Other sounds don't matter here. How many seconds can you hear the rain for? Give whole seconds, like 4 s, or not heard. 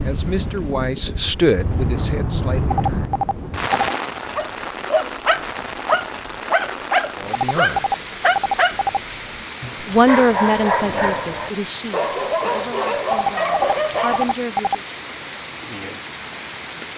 17 s.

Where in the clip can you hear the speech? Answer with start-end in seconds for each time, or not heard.
0.0-3.1, 7.2-7.8, 9.8-14.8.